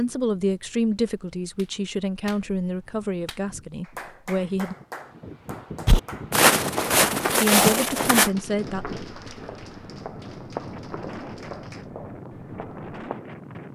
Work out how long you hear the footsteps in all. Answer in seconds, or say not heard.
7 s.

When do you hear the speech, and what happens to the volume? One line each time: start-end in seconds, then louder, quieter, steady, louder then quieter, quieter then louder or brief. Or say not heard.
0.0-4.8 quieter
7.4-8.8 brief.